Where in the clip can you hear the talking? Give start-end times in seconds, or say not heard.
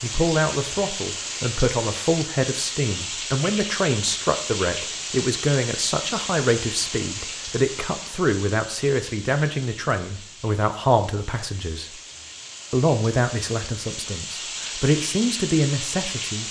0.0-12.0, 12.7-16.4.